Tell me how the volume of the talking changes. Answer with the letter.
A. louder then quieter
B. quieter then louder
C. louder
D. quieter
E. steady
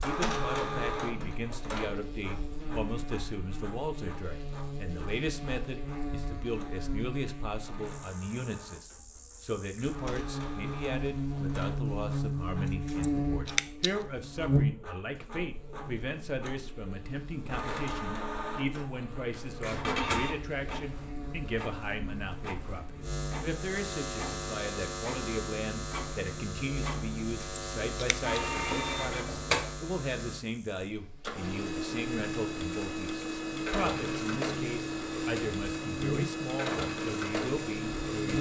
E.